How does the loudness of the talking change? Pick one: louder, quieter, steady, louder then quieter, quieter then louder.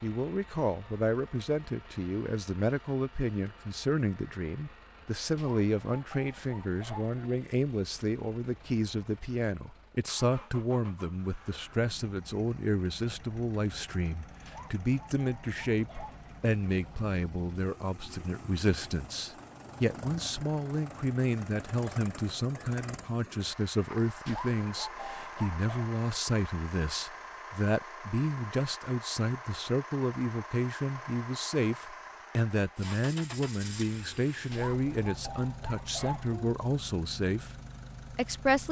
steady.